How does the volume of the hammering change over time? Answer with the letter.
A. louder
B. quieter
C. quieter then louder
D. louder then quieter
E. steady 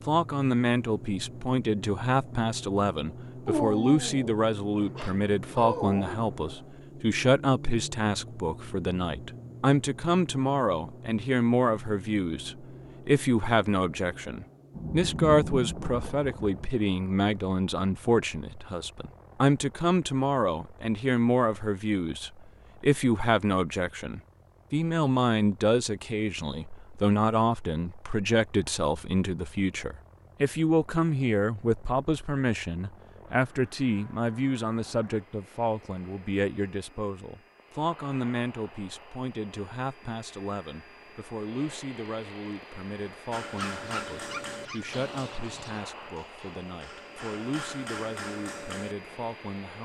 C.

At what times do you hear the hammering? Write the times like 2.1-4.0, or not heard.
43.3-49.0.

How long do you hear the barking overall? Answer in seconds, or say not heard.
5 s.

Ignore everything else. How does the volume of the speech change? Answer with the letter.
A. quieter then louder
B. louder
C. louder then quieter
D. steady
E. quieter
E.